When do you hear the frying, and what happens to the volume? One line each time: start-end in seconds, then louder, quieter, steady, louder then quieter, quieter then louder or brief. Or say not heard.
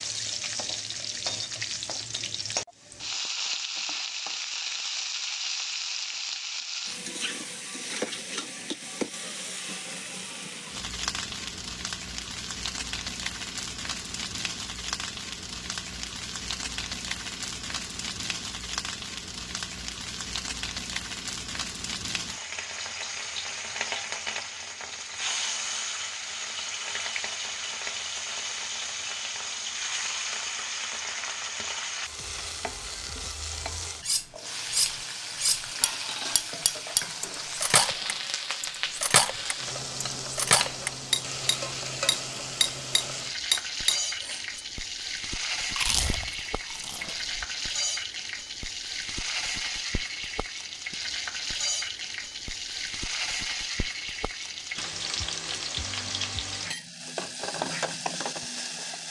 0.0-59.0 steady.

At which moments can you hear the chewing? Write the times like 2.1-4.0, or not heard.
45.8-47.5.